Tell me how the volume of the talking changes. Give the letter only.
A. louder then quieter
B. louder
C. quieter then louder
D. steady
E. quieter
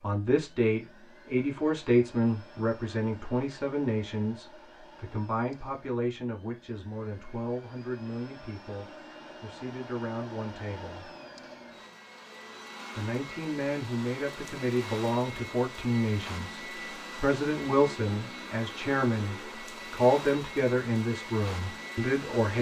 C.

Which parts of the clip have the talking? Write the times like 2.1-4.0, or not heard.
0.0-11.2, 12.9-22.5.